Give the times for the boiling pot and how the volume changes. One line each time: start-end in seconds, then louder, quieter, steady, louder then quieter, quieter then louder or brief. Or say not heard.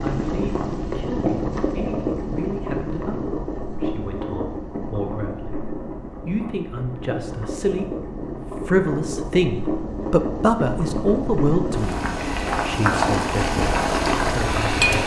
0.0-15.0 quieter then louder.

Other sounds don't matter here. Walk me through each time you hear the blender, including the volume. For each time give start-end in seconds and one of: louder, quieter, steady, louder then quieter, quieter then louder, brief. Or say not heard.
not heard.